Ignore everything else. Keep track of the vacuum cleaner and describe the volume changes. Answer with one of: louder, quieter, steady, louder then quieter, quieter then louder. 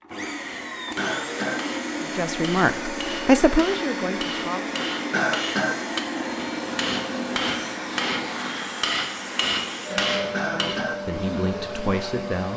steady.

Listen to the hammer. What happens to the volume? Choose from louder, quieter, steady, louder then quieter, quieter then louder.
louder.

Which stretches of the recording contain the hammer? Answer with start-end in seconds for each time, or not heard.
0.4-10.8.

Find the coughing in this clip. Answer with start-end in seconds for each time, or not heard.
0.9-1.6, 5.1-5.8, 10.3-11.0.